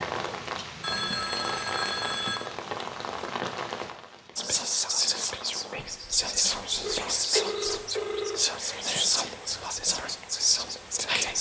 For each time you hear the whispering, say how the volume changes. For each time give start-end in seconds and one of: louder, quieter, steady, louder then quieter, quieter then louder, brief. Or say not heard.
4.3-11.3 steady.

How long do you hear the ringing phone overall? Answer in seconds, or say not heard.
3 s.